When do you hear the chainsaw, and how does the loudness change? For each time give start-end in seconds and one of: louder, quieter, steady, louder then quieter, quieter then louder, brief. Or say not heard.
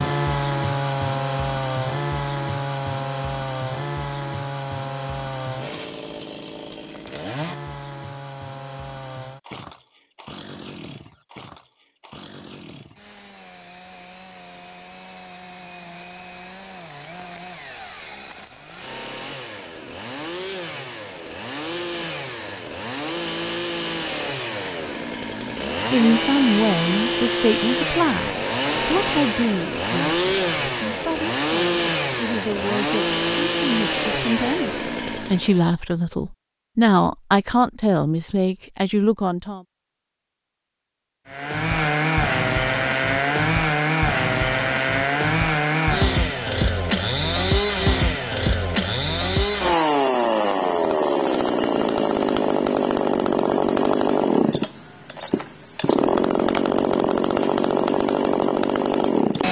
0.0-35.6 quieter then louder
41.3-59.4 steady.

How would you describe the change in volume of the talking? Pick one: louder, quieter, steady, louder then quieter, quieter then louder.
quieter then louder.